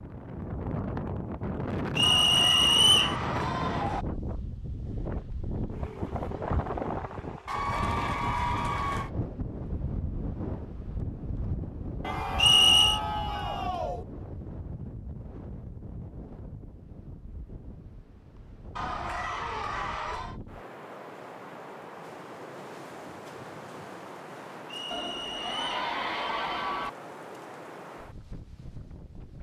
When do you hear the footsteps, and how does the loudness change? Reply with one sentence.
The footsteps can't be heard in this clip.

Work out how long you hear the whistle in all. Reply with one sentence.
The whistle can be heard for 3 seconds in total.